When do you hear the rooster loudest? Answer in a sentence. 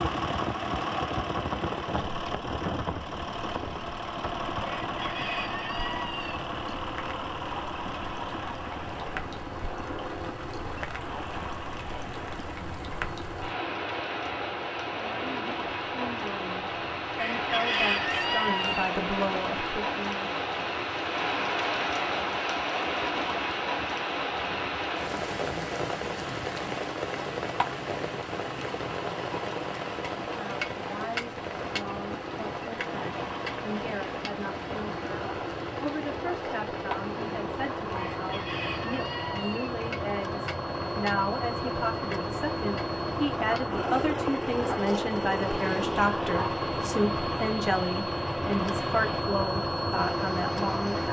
The loudest moment of the rooster is at 18 seconds.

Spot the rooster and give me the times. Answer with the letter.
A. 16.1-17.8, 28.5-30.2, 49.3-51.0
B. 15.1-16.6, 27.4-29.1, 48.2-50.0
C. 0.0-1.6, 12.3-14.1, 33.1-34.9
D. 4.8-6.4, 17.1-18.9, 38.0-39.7
D.